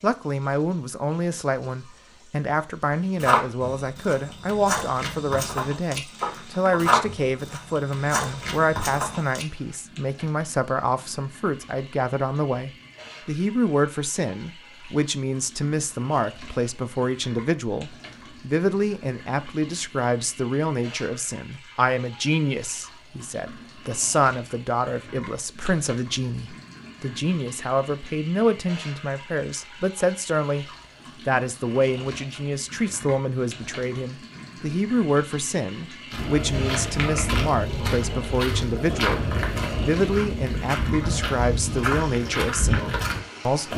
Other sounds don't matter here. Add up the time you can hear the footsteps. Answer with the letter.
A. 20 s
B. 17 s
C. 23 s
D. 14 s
D.